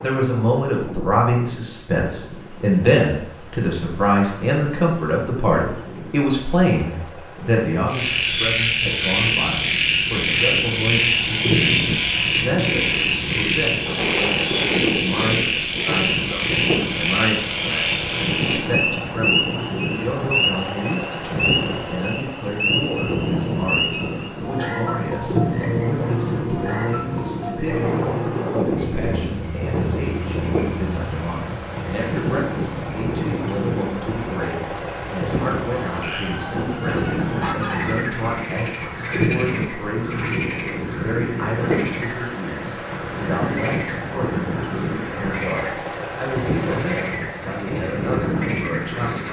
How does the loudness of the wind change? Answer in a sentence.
The volume of the wind goes up.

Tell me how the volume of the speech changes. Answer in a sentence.
The volume of the speech goes down.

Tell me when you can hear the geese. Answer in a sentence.
You can hear the geese from 35.7 to 38.0 s.